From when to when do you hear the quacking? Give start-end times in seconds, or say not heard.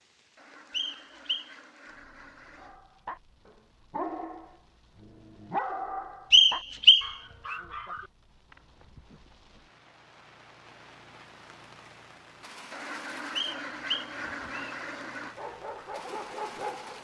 0.3-2.8, 12.7-15.3.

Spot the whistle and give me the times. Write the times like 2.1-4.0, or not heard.
0.7-1.5, 6.3-7.5, 13.3-14.8.